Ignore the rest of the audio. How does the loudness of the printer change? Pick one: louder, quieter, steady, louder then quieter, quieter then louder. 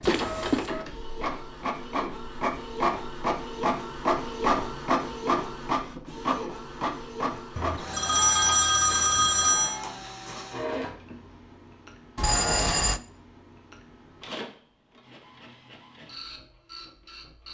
quieter.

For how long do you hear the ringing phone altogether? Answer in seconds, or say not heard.
4 s.